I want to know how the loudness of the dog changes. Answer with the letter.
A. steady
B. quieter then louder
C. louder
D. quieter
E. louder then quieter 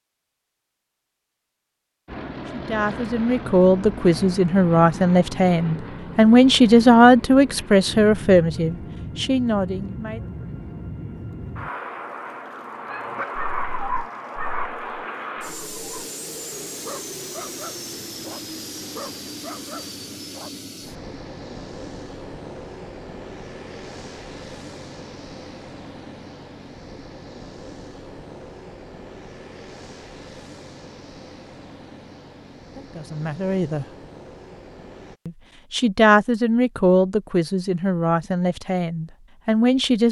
D.